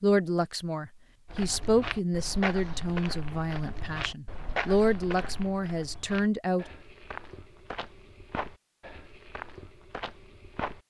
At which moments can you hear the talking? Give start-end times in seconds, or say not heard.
0.0-6.7.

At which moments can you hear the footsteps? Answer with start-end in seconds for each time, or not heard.
1.2-10.8.